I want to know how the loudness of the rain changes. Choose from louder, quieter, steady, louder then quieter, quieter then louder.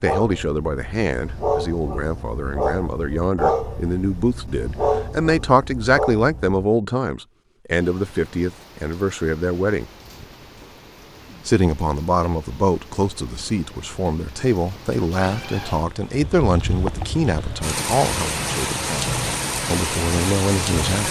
louder.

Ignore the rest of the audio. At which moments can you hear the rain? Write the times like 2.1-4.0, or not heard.
7.8-21.0.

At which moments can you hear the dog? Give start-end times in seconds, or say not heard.
0.0-6.6.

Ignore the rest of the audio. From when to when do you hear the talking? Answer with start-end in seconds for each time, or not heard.
0.0-9.9, 11.4-21.0.